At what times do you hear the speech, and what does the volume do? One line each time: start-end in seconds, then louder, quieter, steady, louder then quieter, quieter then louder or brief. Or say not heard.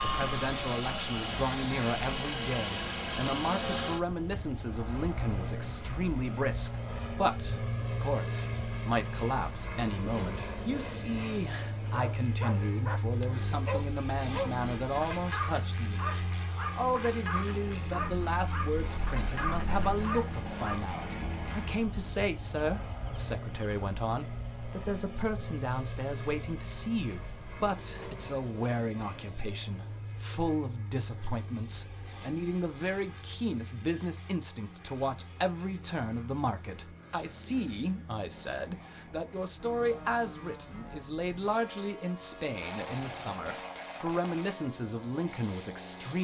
0.0-46.2 steady.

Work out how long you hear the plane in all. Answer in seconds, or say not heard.
46 s.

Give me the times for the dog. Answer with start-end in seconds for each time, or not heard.
11.9-20.9.